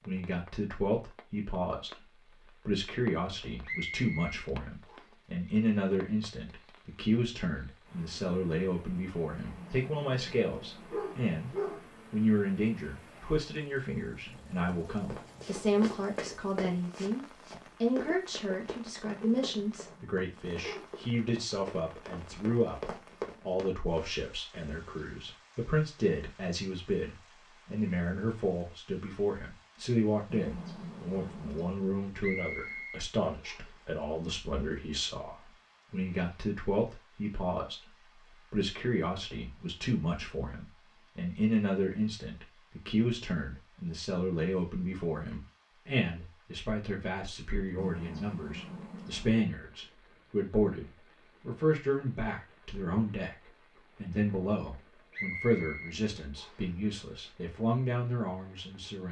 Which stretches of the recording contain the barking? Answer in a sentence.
You can hear the barking from 9.3 to 11.8 s, from 19.1 to 20.9 s, from 30.3 to 31.8 s and from 47.8 to 49.4 s.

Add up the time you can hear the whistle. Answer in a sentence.
You can hear the whistle for 5 seconds altogether.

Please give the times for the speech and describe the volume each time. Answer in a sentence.
You can hear the speech from 0.1 to 59.0 s, at a steady volume.